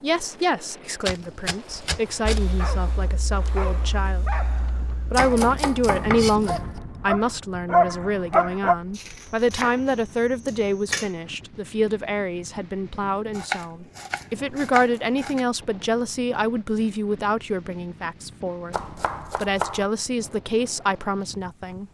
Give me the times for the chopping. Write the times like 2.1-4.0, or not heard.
1.1-2.4, 5.1-6.8, 8.9-11.1, 13.3-15.4, 18.7-19.9.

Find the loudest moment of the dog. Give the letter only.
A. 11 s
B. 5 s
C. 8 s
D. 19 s
C.